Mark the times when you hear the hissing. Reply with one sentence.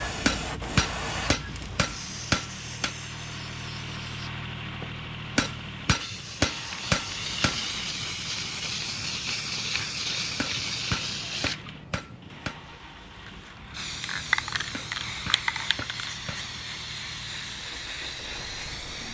The hissing can be heard from 0.0 to 19.0 s.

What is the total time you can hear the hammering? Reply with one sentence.
You can hear the hammering for 9 seconds altogether.